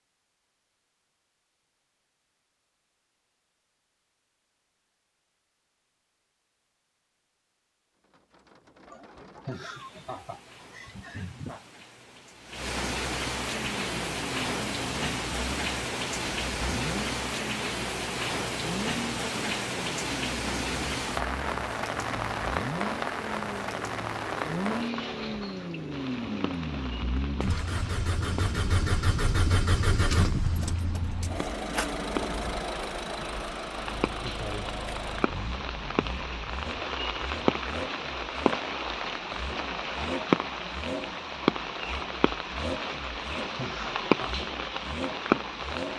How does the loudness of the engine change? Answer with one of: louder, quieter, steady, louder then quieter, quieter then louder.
louder then quieter.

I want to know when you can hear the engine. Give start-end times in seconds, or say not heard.
13.5-45.9.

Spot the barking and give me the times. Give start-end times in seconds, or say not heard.
not heard.